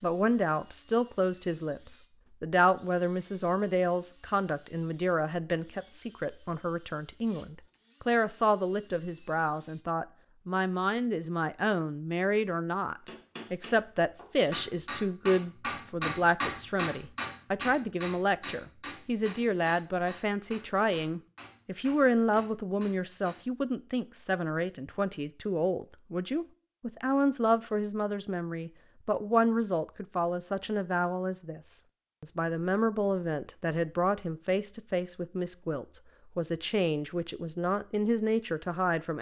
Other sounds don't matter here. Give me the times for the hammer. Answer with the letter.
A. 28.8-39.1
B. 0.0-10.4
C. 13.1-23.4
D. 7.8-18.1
C.